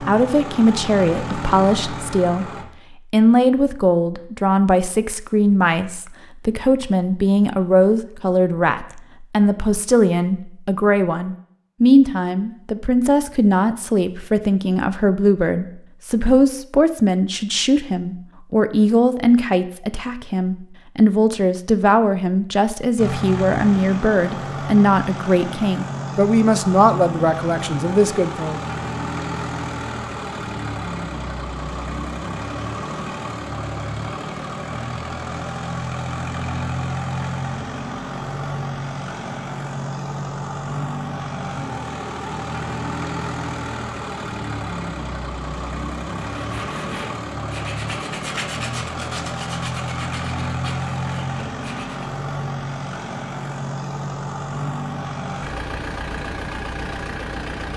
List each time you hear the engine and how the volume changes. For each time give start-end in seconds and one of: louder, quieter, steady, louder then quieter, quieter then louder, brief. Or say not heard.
0.0-2.6 brief
22.9-57.7 steady.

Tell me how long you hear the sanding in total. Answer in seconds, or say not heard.
6 s.